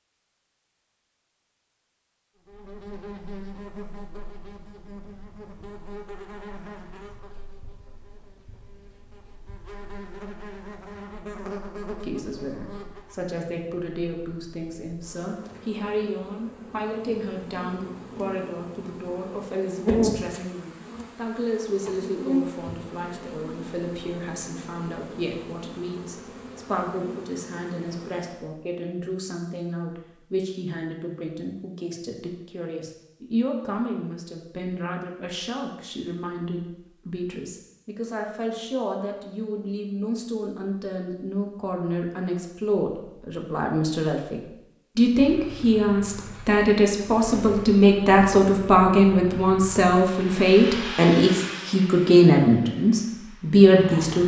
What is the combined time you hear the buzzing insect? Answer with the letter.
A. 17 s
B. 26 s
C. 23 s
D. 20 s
B.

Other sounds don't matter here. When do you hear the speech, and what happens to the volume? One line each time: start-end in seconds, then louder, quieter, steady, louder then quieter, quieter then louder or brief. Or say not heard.
12.0-54.2 louder.